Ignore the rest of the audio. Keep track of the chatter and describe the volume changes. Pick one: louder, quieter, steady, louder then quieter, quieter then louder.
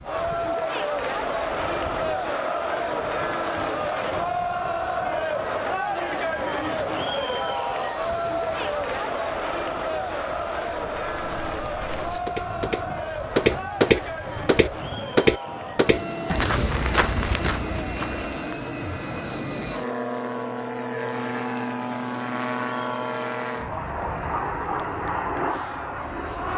quieter.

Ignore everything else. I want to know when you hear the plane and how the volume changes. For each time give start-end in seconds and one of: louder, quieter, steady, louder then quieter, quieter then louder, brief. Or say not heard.
0.0-26.5 louder.